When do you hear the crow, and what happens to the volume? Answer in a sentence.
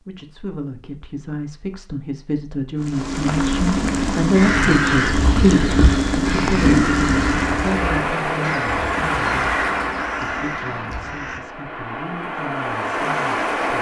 The crow can be heard from 4.3 to 11.4 s, getting quieter.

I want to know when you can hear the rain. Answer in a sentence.
The rain can be heard from 2.8 to 13.7 s.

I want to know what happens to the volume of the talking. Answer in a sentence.
The loudness of the talking goes up, then down.